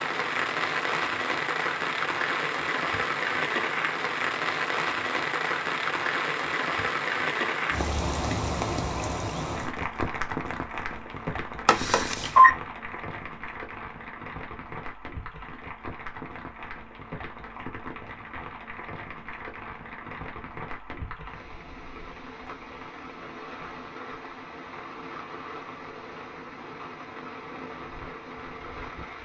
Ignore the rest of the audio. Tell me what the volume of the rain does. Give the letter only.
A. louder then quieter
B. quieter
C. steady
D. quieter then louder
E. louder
B.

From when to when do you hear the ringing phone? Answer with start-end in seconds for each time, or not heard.
11.7-12.6.